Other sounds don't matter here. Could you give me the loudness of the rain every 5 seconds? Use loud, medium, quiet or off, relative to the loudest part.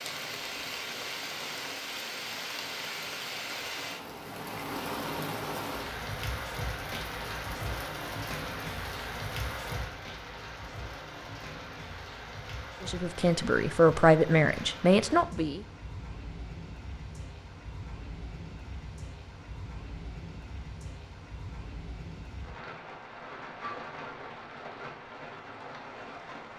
loud, loud, medium, medium, medium, medium.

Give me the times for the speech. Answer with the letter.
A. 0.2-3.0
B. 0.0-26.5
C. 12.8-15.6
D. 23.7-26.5
C.